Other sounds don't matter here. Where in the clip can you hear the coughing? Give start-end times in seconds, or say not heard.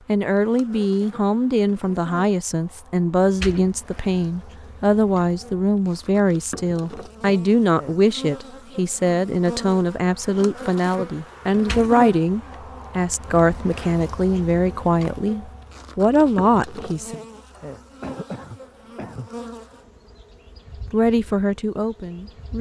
18.0-19.3.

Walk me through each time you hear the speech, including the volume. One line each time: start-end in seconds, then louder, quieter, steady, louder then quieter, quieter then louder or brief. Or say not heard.
0.1-17.1 steady
20.9-22.5 brief.